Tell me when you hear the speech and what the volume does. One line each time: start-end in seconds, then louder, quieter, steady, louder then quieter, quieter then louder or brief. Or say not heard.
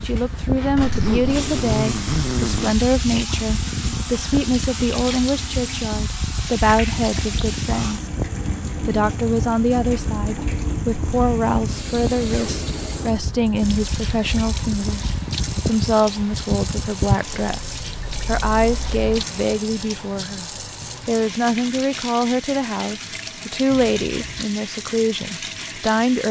0.0-8.1 steady
8.8-26.2 steady.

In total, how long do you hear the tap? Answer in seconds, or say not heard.
26 s.